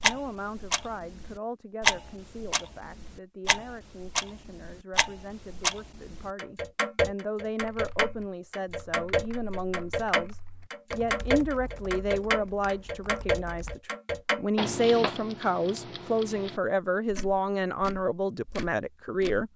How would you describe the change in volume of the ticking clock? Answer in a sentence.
The volume of the ticking clock goes down.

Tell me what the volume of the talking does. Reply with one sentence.
The volume of the talking goes up.